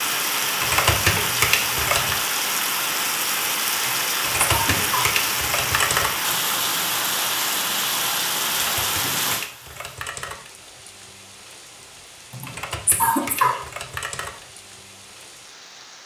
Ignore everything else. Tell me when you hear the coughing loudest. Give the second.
13 s.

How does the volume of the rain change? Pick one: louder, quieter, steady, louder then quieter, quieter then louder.
quieter.